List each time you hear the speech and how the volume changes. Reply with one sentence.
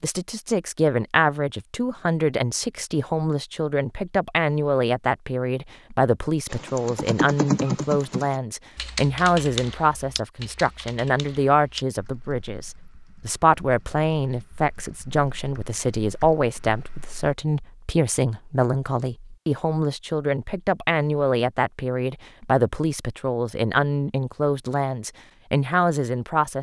The speech can be heard from 0.0 to 26.5 s, at a steady volume.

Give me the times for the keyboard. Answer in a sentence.
The keyboard can be heard from 6.5 to 17.4 s.